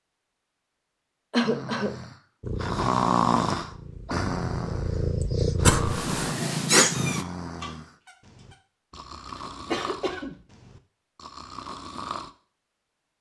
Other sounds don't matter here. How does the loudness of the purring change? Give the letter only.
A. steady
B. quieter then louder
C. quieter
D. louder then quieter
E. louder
E.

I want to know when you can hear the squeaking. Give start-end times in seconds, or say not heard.
6.7-7.7.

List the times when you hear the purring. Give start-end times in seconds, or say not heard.
2.4-7.2.